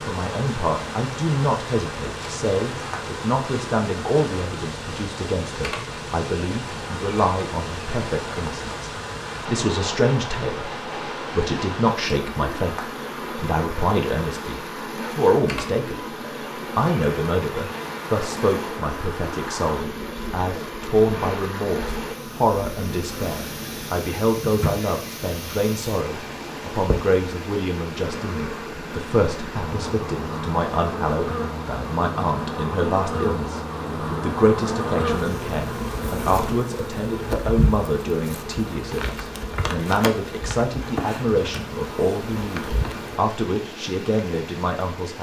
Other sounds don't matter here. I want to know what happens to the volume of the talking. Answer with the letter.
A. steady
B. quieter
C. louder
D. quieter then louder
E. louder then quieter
A.